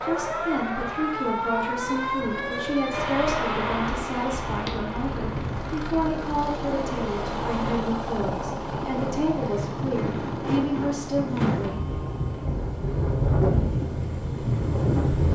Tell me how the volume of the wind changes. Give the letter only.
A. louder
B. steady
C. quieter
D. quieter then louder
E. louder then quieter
D.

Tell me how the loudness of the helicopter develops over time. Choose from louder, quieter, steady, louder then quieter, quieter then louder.
louder then quieter.